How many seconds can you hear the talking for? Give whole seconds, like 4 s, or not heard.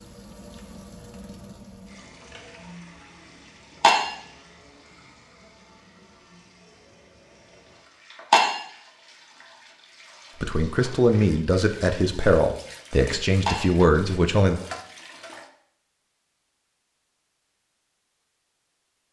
4 s.